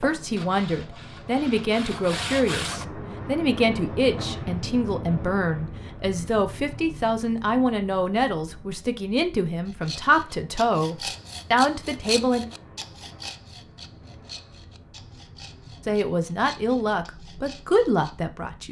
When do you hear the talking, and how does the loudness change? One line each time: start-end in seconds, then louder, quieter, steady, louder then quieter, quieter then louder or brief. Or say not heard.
0.0-12.4 steady
15.8-18.6 brief.